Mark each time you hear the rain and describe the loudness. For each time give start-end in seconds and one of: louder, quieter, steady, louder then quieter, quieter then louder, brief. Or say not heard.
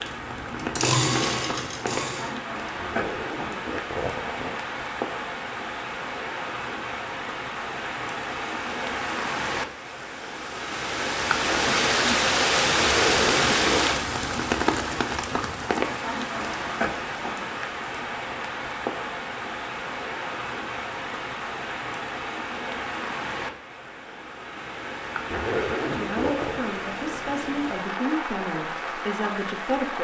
0.0-30.0 louder then quieter.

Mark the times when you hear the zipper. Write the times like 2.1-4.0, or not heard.
2.8-4.6, 12.8-13.8, 25.3-26.6.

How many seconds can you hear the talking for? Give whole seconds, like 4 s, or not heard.
4 s.